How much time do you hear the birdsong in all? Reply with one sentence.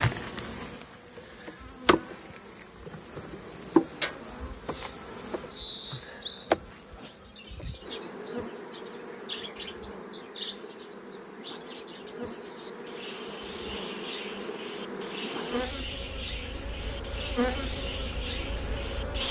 The birdsong can be heard for 14 seconds in total.